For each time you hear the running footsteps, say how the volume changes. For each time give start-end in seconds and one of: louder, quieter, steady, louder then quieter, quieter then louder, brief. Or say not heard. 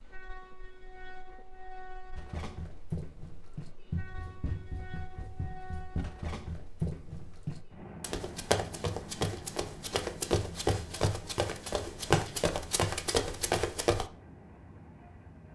2.1-14.1 louder.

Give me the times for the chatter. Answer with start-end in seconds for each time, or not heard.
not heard.